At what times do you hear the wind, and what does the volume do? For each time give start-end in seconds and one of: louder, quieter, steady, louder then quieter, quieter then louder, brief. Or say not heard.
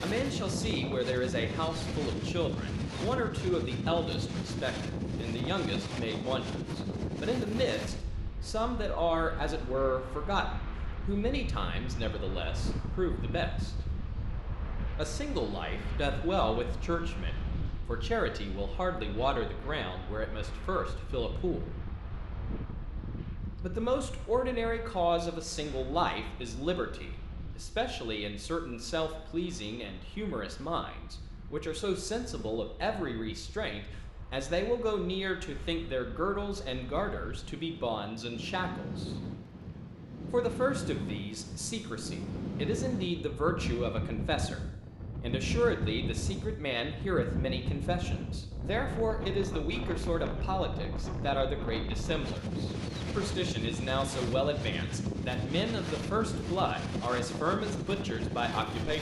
0.0-58.9 quieter then louder.